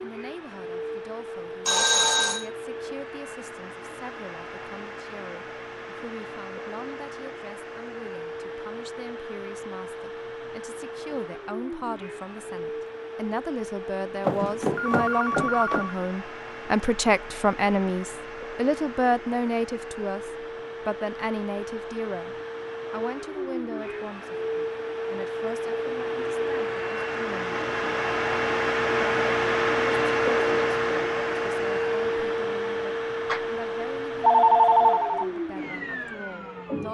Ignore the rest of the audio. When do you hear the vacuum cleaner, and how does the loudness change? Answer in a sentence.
The vacuum cleaner can be heard from 0.0 to 36.8 s, getting louder.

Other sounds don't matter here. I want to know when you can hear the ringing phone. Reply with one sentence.
The ringing phone can be heard from 1.6 to 2.5 s, from 14.2 to 15.9 s and from 33.2 to 35.2 s.